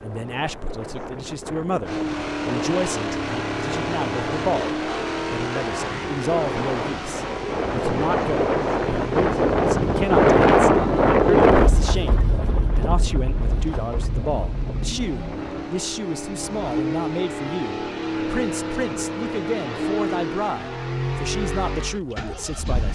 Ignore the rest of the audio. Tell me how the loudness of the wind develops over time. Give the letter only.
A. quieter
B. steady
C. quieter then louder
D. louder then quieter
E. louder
D.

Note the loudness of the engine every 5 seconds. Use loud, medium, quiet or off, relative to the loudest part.
loud, medium, medium, loud, loud.